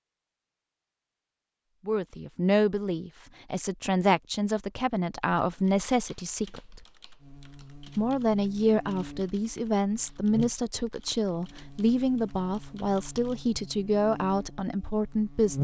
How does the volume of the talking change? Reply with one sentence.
The loudness of the talking stays about the same.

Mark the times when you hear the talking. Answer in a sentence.
You can hear the talking from 1.9 to 6.8 s and from 8.0 to 15.6 s.